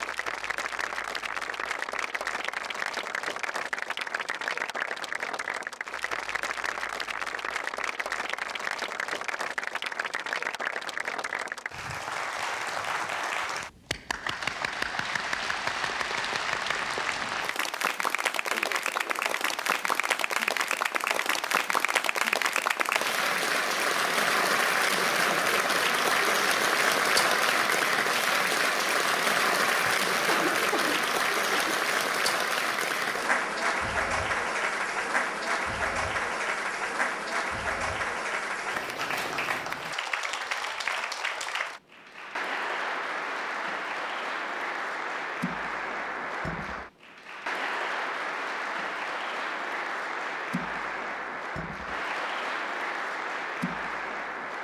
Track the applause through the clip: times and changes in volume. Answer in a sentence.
You can hear the applause from 0.0 to 54.5 s, getting louder then quieter.